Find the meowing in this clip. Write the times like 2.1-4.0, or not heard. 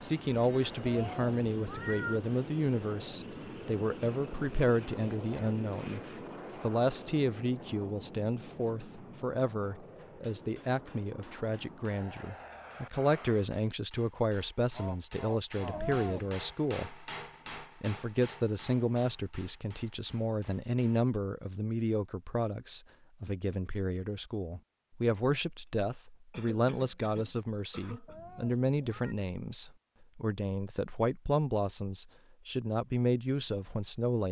0.8-2.2, 15.7-16.4, 28.1-29.1.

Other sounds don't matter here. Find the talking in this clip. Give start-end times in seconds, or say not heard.
0.0-6.0, 6.6-34.2.